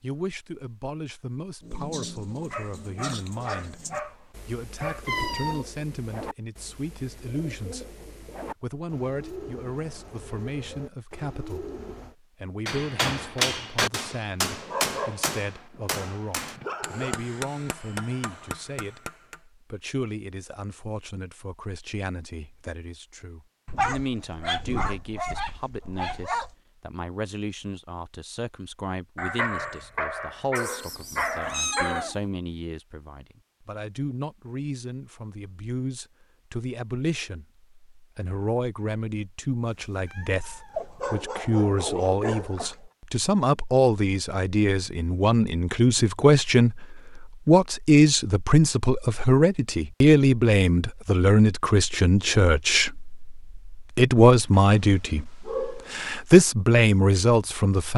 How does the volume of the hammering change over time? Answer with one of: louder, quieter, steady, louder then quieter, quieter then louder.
quieter.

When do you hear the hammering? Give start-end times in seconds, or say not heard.
12.7-19.4.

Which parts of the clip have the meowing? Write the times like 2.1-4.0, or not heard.
5.0-5.7, 30.6-32.2, 39.6-41.0.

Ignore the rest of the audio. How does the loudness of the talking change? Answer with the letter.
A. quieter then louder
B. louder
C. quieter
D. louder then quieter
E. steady
B.